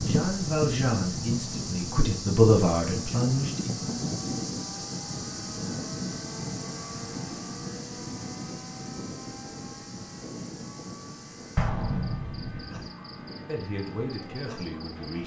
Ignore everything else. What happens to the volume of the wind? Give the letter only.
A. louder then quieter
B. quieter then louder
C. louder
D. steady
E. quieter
E.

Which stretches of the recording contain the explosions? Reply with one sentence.
The explosions can be heard from 11.6 to 12.9 s.